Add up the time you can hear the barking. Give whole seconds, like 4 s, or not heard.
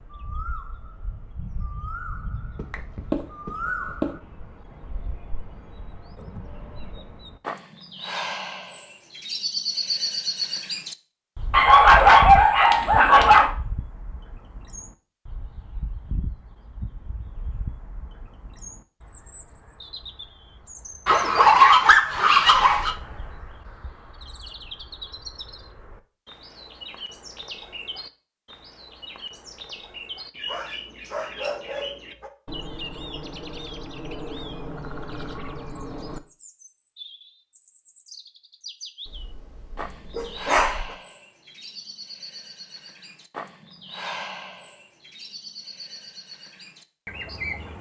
9 s.